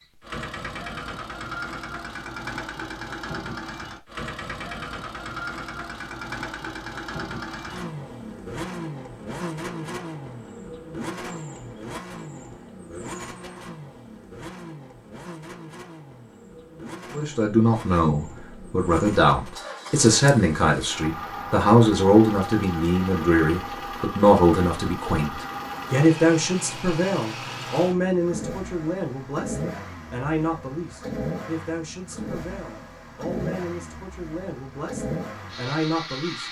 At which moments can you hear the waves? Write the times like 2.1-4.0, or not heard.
not heard.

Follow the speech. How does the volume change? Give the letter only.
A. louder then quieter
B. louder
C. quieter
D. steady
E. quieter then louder
C.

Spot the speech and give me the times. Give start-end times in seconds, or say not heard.
17.1-36.4.